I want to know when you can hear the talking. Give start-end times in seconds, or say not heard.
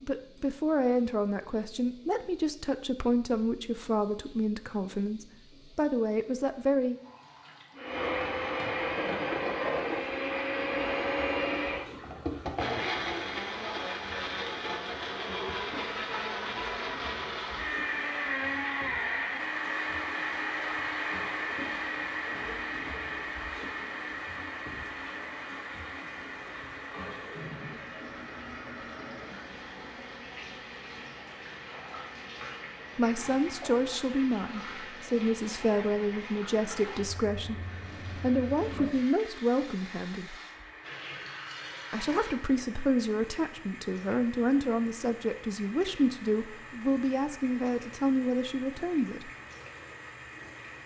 0.0-7.0, 33.0-40.4, 41.9-49.3.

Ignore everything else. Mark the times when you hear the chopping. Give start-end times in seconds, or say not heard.
not heard.